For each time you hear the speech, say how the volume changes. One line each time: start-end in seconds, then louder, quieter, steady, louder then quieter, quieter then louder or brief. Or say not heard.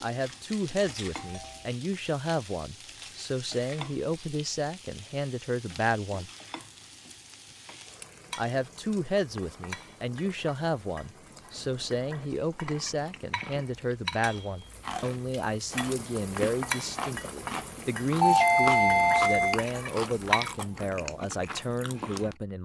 0.0-6.3 steady
8.3-22.6 steady.